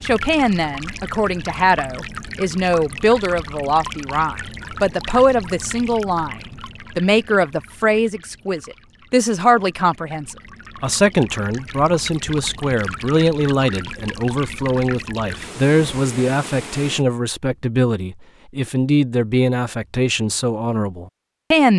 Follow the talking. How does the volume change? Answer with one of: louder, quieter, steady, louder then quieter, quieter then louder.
steady.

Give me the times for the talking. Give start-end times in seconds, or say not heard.
0.0-6.3, 7.0-21.7.